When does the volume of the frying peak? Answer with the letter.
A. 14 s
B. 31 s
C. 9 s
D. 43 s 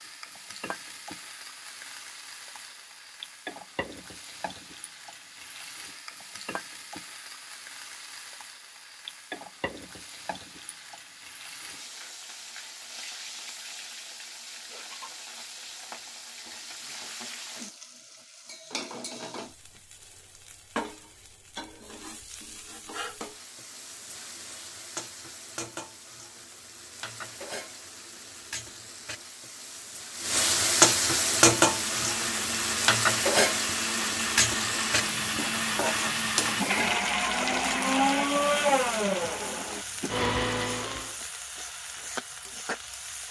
B.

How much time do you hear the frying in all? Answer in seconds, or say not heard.
43 s.